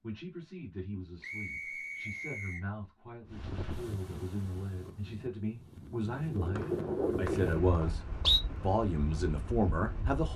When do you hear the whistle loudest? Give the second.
8 s.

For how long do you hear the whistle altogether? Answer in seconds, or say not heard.
3 s.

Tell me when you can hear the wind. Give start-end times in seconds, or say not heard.
3.3-10.3.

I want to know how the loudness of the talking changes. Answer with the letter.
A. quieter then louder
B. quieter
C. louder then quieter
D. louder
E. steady
D.